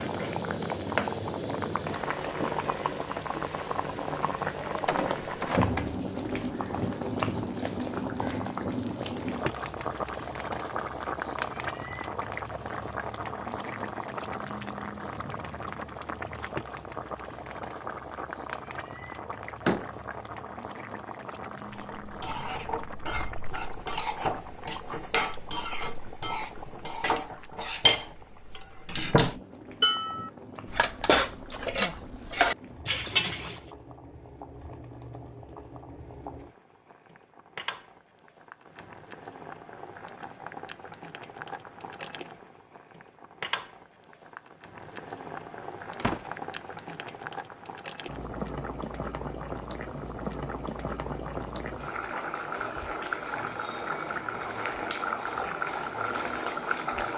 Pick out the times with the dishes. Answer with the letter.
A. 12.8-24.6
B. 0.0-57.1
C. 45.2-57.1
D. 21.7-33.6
D.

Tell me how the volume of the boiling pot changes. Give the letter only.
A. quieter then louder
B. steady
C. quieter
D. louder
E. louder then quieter
A.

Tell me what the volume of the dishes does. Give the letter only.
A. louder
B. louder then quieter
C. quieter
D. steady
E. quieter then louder
A.